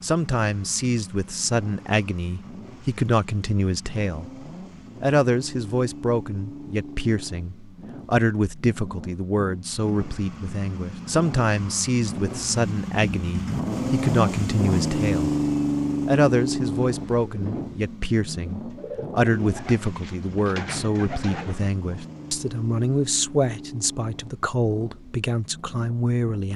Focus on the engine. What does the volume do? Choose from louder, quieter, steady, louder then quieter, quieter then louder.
louder then quieter.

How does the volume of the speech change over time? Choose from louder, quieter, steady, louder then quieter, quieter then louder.
steady.